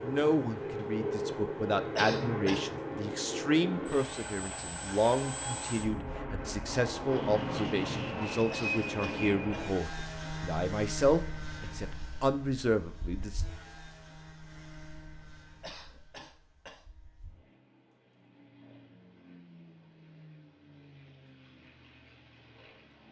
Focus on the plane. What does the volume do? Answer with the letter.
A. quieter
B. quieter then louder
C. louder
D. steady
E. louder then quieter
A.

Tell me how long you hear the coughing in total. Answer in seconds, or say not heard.
3 s.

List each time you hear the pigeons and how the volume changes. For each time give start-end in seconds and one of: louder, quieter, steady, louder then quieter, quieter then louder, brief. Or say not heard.
not heard.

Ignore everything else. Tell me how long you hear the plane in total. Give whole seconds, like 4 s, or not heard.
23 s.